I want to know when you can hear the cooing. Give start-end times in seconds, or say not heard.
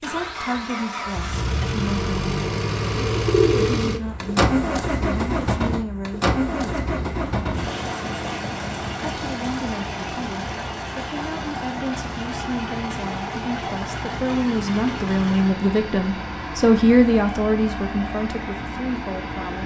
3.0-4.3.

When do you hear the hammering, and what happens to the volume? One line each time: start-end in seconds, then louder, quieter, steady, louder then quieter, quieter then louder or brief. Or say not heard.
not heard.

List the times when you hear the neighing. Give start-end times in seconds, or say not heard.
not heard.